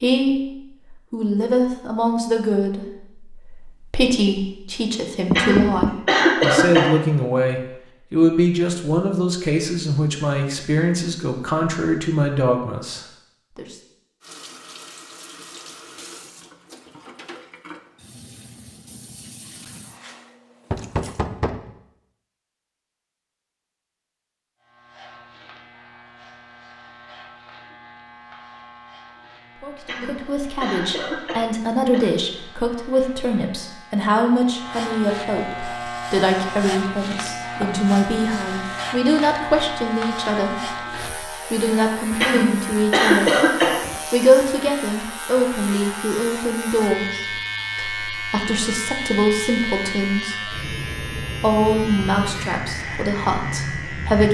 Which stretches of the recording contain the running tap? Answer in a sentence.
You can hear the running tap from 14.2 to 21.2 s.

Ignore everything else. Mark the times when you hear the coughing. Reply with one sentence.
You can hear the coughing from 5.3 to 7.0 s, from 29.9 to 32.1 s and from 42.2 to 43.9 s.